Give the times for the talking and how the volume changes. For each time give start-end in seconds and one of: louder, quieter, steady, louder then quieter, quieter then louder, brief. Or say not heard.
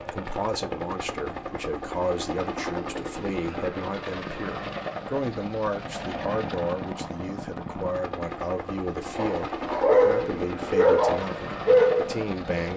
0.0-12.7 steady.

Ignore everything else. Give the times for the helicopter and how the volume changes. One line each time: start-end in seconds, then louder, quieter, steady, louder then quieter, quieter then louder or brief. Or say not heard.
0.0-12.7 steady.